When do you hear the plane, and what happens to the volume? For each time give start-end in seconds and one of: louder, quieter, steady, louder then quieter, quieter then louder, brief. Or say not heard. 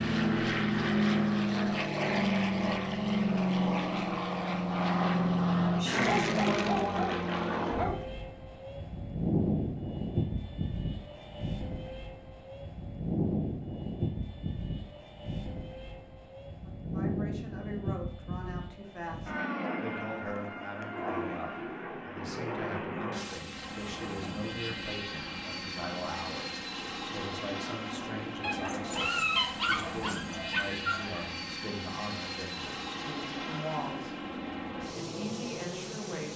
0.0-36.3 quieter.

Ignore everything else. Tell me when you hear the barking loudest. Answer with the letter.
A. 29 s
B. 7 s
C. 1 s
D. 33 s
A.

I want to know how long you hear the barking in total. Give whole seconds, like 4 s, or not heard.
5 s.